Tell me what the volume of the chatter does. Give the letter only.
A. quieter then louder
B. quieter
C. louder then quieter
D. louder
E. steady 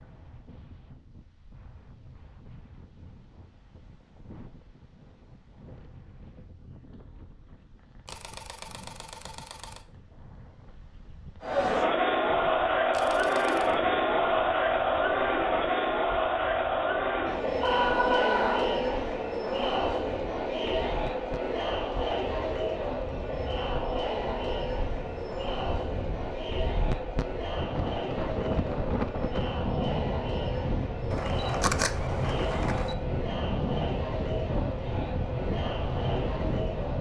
B.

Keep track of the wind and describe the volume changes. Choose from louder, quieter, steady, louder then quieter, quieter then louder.
louder.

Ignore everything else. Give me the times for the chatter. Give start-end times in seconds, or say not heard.
11.4-36.9.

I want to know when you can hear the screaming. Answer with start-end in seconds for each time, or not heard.
17.6-18.6.